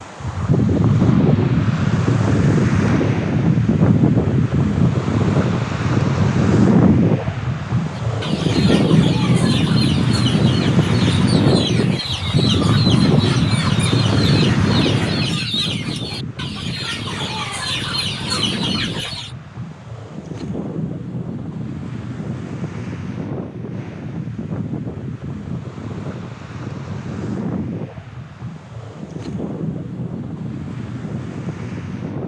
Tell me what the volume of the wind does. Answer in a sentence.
The volume of the wind goes down.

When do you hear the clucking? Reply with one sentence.
The clucking can be heard from 8.2 to 19.3 s.